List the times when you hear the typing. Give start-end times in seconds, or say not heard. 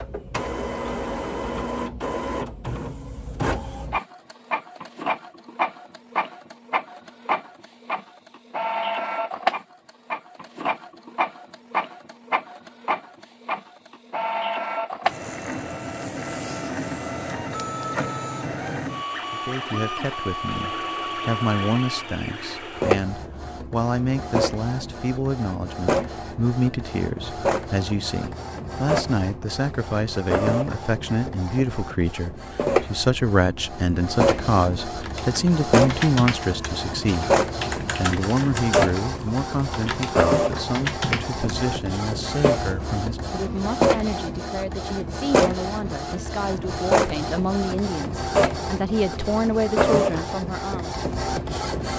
35.0-41.4.